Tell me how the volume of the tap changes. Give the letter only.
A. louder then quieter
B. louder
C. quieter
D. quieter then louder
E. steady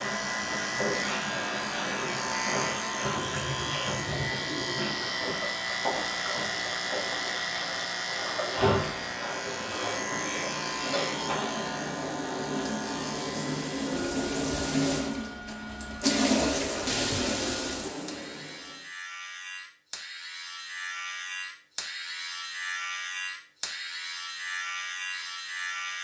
B.